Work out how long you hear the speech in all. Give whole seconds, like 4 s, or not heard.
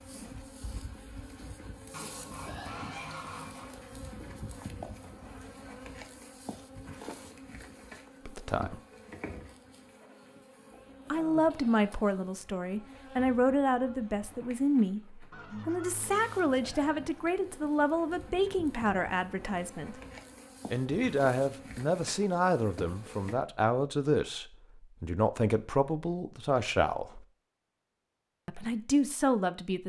17 s.